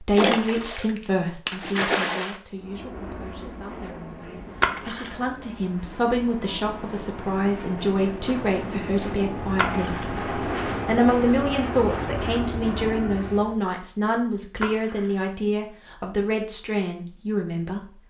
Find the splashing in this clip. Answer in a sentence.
You can hear the splashing from 0.1 to 2.4 s, from 4.6 to 5.2 s, from 9.6 to 10.2 s and from 14.6 to 15.2 s.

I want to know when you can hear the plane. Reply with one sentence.
The plane can be heard from 2.5 to 13.6 s.